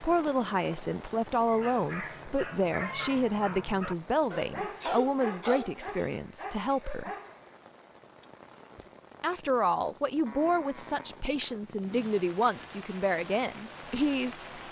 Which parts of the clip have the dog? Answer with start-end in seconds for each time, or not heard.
1.4-7.5.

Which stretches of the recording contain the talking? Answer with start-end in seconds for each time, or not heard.
0.0-7.1, 9.2-14.4.